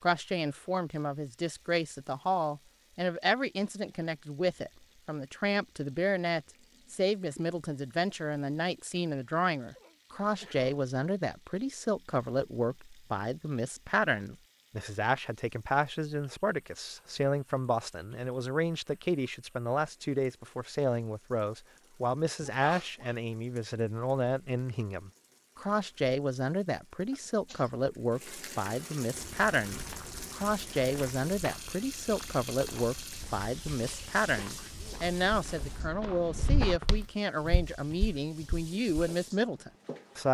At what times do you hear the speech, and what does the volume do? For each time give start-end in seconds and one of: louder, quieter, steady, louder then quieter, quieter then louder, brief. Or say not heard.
0.0-40.2 steady.